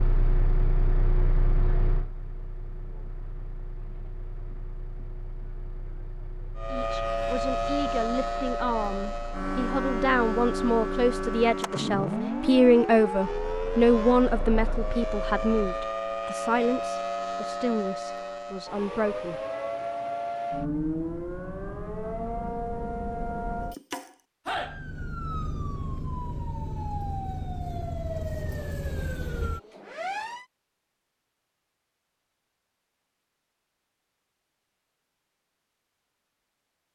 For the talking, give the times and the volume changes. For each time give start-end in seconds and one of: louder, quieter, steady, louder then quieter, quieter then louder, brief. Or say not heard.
6.7-19.4 louder then quieter.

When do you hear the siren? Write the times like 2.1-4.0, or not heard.
6.5-30.4.